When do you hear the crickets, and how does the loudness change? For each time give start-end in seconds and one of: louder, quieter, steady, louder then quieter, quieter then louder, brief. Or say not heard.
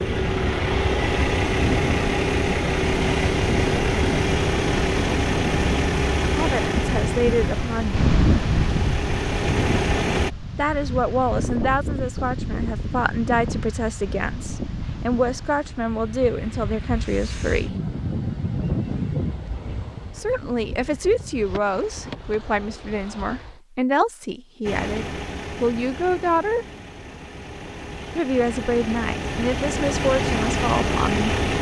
not heard.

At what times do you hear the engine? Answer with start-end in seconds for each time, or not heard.
0.0-10.3, 24.6-31.5.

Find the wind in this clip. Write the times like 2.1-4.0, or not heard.
0.1-23.6.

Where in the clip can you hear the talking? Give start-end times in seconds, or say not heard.
6.3-8.1, 10.6-17.7, 20.1-26.6, 28.1-31.2.